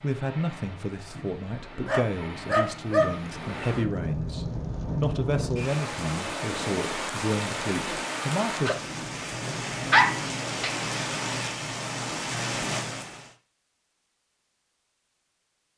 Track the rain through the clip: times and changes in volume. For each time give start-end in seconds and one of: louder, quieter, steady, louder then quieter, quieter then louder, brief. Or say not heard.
0.0-13.3 louder.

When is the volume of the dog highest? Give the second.
10 s.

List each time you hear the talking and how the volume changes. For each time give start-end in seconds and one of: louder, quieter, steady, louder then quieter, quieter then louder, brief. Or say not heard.
0.0-8.8 steady.